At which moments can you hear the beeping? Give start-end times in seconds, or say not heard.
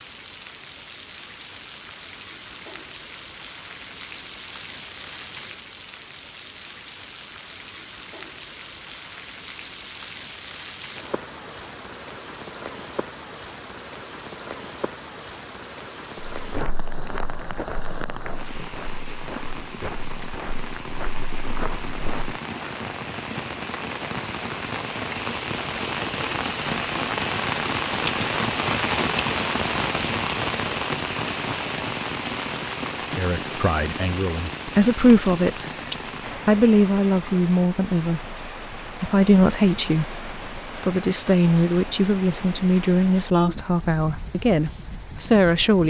not heard.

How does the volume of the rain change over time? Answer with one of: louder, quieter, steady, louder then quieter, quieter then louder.
louder then quieter.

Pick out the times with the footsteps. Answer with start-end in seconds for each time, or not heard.
16.4-22.4.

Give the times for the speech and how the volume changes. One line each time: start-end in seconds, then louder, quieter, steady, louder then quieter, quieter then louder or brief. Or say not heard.
33.1-35.7 brief
36.4-45.8 steady.